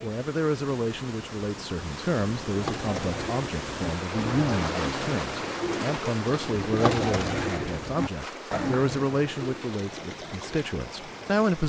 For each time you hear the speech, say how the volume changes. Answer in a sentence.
You can hear the speech from 0.0 to 11.6 s, at a steady volume.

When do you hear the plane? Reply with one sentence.
The plane can't be heard in this clip.